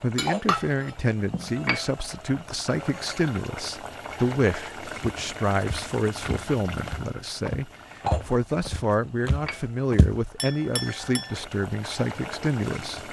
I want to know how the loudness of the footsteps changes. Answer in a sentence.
The volume of the footsteps goes up.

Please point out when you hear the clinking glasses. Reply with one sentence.
You can hear the clinking glasses from 0.1 to 1.6 s and from 10.3 to 11.4 s.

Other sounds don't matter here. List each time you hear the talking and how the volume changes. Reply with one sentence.
The talking can be heard from 0.0 to 13.0 s, at a steady volume.